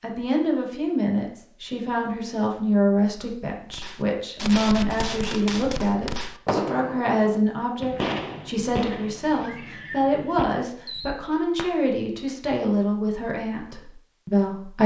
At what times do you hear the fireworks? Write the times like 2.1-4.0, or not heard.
3.7-11.8.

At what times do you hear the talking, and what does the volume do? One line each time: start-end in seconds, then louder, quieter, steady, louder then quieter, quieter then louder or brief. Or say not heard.
0.0-14.8 steady.